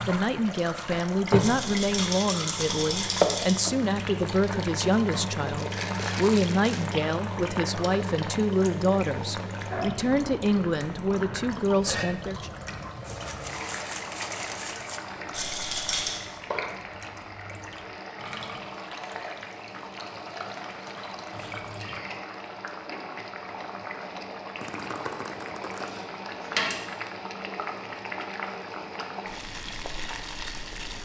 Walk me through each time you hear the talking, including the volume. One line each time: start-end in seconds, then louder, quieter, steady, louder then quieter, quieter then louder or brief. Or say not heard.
0.1-12.6 steady.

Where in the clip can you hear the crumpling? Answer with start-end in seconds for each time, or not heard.
5.5-6.9, 13.0-15.0, 24.6-26.1.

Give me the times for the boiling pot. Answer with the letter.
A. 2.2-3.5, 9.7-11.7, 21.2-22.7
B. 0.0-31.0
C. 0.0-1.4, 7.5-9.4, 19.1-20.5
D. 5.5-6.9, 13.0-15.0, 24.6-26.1
B.